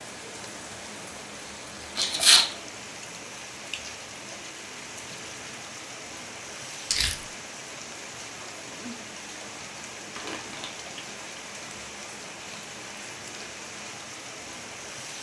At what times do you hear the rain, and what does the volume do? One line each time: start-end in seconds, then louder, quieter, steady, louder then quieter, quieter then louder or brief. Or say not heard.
0.0-15.1 steady.